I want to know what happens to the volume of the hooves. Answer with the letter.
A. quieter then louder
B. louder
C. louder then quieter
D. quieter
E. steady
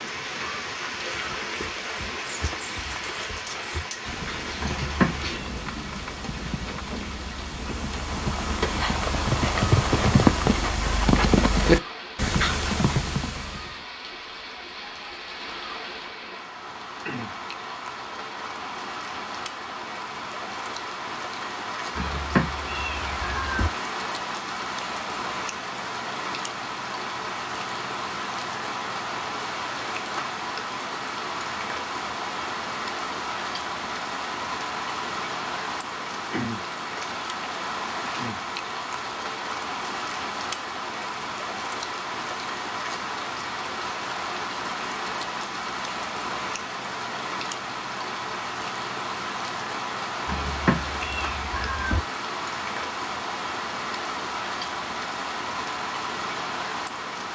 B.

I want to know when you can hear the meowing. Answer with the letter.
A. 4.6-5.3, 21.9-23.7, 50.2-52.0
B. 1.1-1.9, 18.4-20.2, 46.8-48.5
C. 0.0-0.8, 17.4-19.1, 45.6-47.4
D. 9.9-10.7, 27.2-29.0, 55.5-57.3
A.